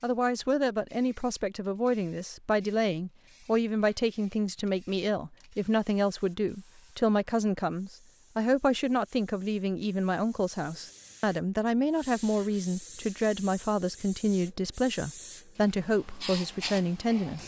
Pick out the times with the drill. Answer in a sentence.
The drill can't be heard in this clip.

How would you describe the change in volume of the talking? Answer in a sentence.
The loudness of the talking stays about the same.